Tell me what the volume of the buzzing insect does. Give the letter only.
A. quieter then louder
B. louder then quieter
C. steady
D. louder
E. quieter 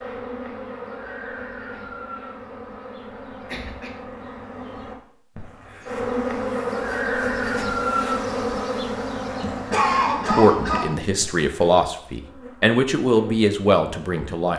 B.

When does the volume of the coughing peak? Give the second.
10 s.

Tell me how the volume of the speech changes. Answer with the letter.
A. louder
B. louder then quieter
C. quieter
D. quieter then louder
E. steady
A.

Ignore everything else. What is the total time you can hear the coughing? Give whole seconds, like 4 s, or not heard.
2 s.